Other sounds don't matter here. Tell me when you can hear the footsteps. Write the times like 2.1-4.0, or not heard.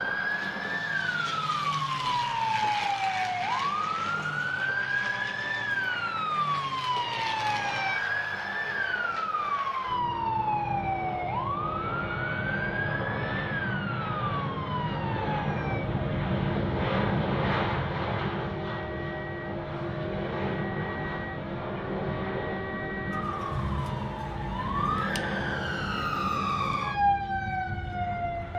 not heard.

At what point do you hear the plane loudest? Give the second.
17 s.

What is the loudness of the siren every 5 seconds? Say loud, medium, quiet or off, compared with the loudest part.
loud, loud, loud, medium, medium, loud.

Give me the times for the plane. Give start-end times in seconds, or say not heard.
0.0-28.5.